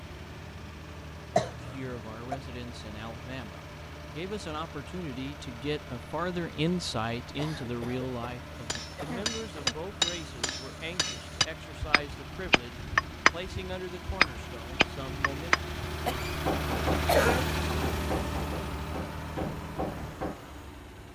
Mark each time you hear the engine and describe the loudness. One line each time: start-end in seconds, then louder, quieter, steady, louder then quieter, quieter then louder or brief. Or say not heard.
0.0-21.1 louder.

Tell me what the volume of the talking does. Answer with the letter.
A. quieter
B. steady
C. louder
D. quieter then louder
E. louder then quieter
E.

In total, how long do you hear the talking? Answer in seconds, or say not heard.
14 s.